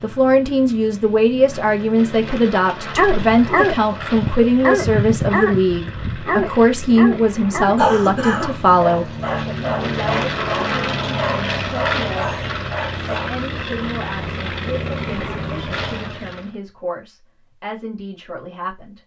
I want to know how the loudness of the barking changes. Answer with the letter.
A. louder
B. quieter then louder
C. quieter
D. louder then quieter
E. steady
C.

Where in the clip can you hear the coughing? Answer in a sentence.
The coughing can be heard from 7.8 to 8.6 s.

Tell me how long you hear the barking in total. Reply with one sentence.
The barking can be heard for 10 seconds in total.